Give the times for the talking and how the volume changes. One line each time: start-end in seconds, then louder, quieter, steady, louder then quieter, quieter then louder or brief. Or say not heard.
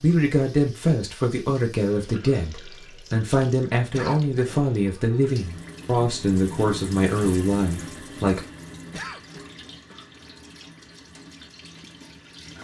0.0-8.4 steady.